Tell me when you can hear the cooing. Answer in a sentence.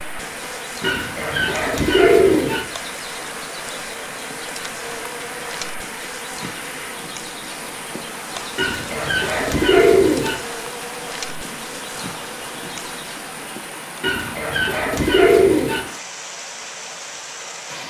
The cooing can be heard from 0.8 to 2.6 s, from 8.6 to 10.3 s and from 14.0 to 15.8 s.